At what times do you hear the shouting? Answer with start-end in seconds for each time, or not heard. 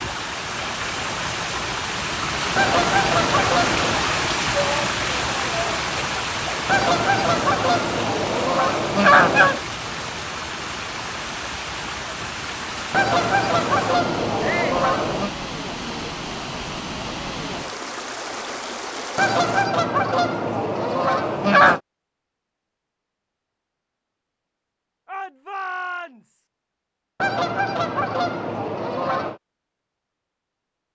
4.5-5.8, 14.4-14.8, 25.1-26.4.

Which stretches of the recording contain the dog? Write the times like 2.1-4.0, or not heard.
not heard.